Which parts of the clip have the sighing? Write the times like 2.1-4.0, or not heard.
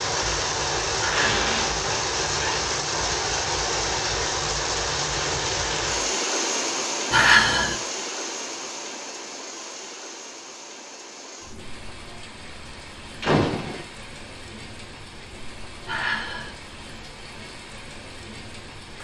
0.9-1.4, 7.1-7.8, 15.8-16.6.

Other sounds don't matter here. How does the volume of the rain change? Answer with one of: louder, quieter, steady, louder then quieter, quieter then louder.
quieter.